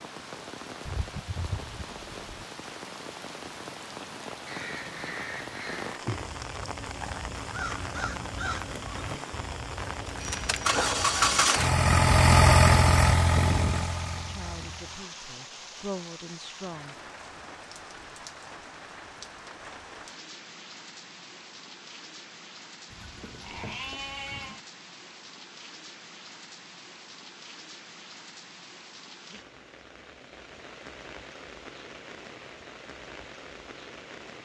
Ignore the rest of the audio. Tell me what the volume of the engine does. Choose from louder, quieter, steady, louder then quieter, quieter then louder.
louder then quieter.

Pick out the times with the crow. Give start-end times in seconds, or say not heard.
4.5-11.5.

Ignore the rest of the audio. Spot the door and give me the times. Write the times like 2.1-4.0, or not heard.
not heard.